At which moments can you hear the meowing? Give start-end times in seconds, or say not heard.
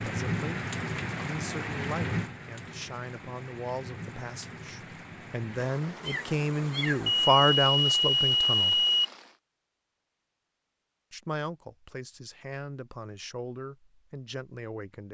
6.0-7.2.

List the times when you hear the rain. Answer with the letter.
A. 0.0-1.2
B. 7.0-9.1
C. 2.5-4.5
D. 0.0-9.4
D.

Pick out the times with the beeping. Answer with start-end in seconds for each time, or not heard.
7.0-9.1.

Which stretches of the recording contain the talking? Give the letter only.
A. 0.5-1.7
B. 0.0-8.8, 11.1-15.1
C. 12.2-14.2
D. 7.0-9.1
B.